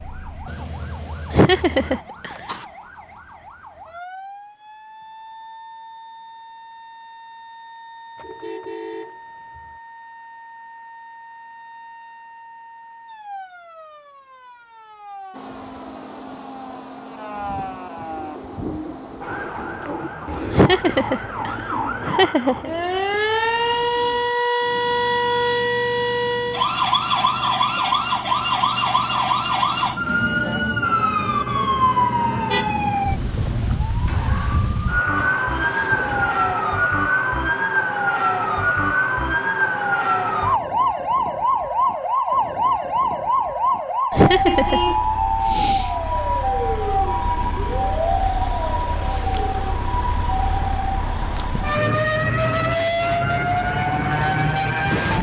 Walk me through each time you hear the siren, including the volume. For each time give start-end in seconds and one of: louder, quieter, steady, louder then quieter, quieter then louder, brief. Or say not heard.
0.0-55.1 louder.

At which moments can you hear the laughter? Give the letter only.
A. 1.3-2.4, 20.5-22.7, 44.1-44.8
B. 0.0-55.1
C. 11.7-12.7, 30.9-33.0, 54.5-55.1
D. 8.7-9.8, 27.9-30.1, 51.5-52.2
A.